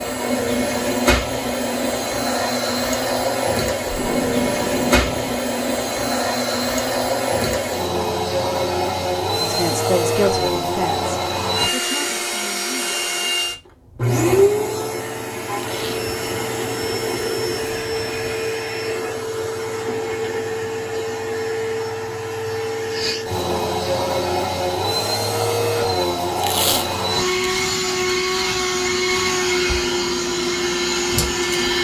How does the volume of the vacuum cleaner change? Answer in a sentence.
The volume of the vacuum cleaner stays about the same.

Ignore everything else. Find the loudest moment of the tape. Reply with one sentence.
The loudest moment of the tape is at 27 seconds.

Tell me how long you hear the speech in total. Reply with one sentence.
You can hear the speech for 4 seconds altogether.